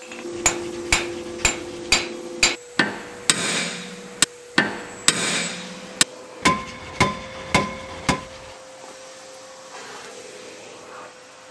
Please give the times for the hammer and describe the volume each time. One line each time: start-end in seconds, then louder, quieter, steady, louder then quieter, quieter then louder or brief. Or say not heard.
0.1-8.2 steady.